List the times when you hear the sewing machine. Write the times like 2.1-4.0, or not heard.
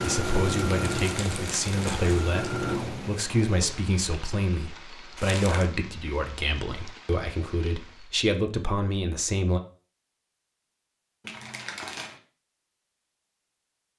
0.0-3.1.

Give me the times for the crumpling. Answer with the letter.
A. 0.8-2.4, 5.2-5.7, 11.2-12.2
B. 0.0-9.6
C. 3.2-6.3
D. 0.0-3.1
A.